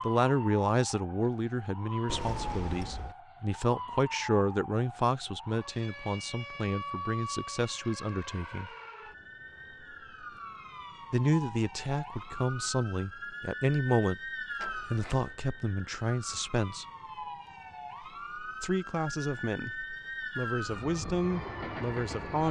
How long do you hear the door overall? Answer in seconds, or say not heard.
2 s.